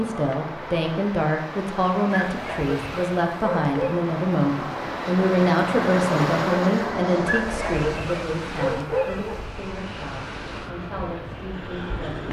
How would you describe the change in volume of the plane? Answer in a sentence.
The volume of the plane goes up, then down.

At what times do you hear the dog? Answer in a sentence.
The dog can be heard from 2.1 to 4.0 s and from 7.2 to 9.5 s.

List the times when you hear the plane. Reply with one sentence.
You can hear the plane from 0.0 to 12.2 s.